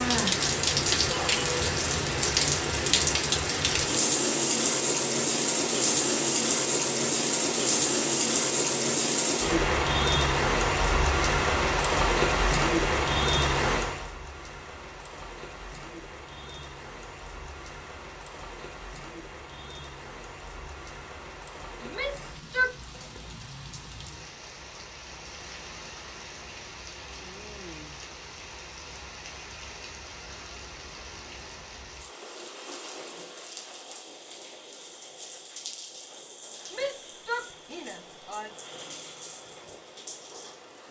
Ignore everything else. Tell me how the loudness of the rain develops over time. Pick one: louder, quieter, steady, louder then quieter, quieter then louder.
quieter.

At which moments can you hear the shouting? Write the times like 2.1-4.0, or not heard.
1.1-1.6, 21.8-22.8, 36.7-38.5.